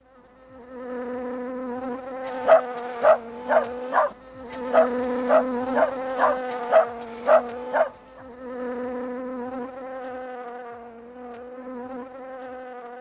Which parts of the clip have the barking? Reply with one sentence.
The barking can be heard from 2.4 to 7.9 s.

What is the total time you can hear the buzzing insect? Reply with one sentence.
The buzzing insect can be heard for 13 seconds in total.